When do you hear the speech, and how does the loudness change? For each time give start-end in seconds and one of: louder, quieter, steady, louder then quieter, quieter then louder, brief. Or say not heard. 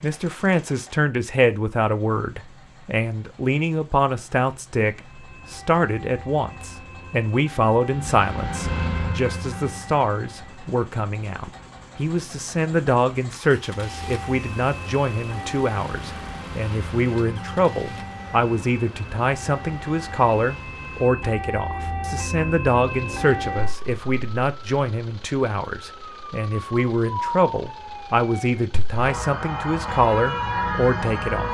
0.0-31.5 steady.